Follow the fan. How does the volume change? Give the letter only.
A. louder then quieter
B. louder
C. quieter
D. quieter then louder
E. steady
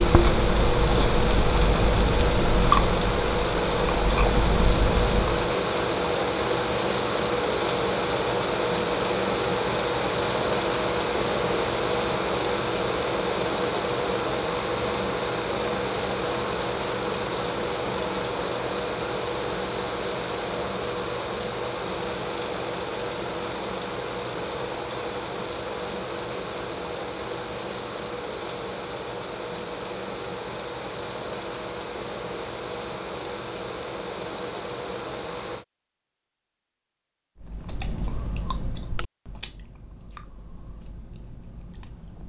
C.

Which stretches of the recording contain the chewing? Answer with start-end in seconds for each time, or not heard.
0.0-5.5, 37.4-42.2.